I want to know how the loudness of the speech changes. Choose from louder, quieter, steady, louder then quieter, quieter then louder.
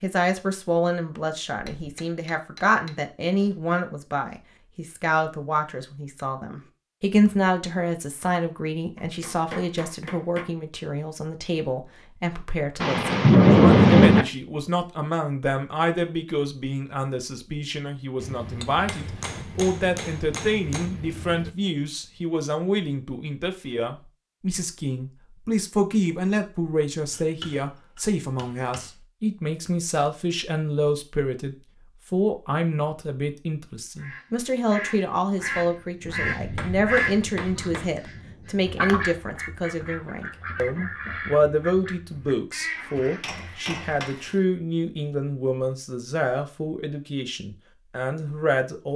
steady.